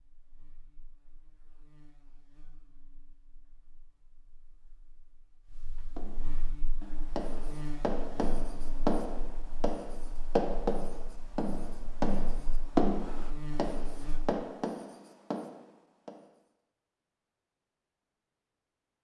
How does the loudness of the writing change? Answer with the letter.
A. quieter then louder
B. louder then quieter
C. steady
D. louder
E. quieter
B.